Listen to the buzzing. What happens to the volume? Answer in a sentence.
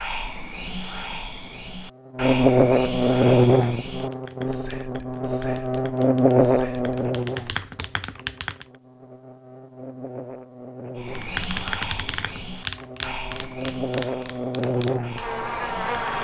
The volume of the buzzing goes down, then up.